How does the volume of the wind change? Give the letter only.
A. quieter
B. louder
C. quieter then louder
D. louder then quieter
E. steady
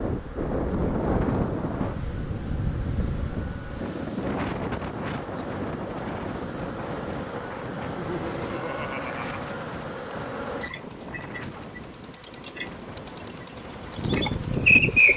A.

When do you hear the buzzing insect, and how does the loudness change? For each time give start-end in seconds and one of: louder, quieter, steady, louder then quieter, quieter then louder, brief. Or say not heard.
0.0-15.1 louder.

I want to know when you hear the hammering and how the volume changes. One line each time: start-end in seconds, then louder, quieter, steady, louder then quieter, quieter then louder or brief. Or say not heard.
not heard.